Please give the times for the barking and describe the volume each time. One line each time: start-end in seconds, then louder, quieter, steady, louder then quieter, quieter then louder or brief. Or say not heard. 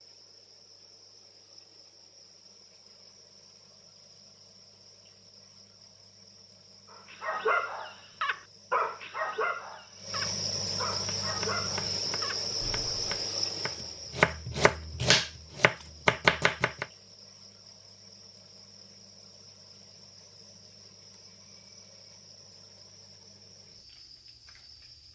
6.9-13.1 quieter.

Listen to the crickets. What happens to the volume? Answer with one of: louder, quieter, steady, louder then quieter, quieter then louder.
louder then quieter.